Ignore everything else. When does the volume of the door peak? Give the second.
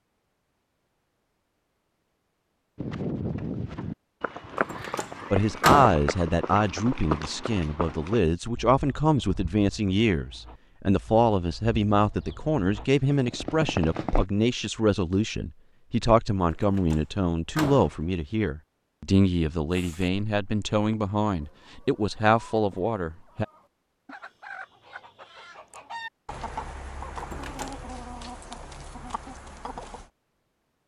6 s.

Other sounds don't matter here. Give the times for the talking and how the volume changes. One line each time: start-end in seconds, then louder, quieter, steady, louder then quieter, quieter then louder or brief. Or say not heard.
5.3-23.4 steady.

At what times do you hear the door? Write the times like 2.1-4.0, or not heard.
4.5-6.0, 16.5-18.0, 27.1-27.8.